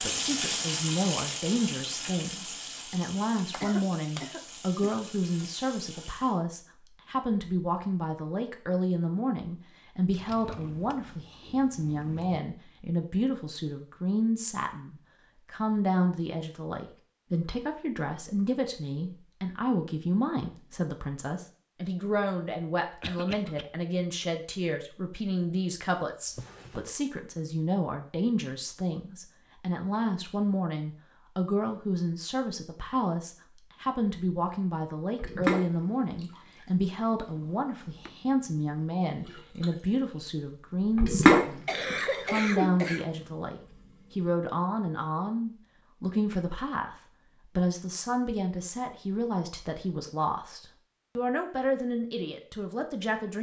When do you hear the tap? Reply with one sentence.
The tap can be heard from 0.0 to 6.4 s and from 35.1 to 44.3 s.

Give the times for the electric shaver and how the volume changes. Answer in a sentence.
You can't hear the electric shaver here.